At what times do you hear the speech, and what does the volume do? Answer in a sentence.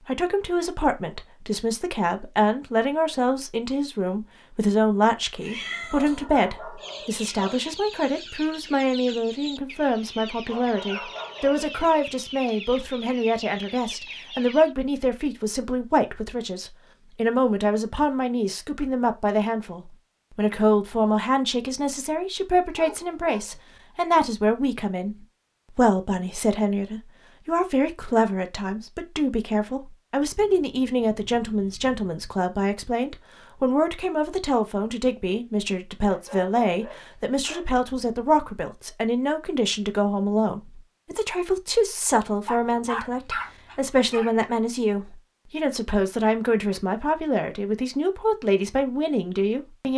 You can hear the speech from 0.1 to 49.9 s, at a steady volume.